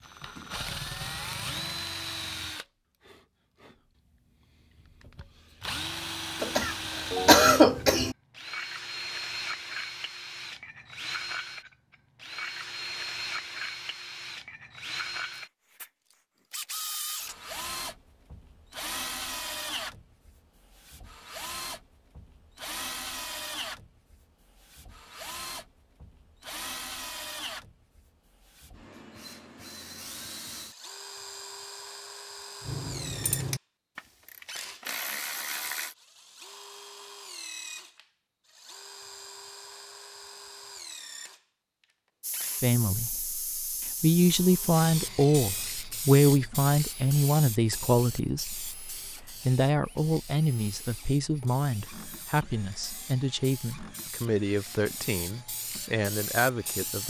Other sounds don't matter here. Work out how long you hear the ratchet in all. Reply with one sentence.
The ratchet can be heard for 3 seconds in total.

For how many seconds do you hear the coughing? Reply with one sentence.
You can hear the coughing for 2 seconds altogether.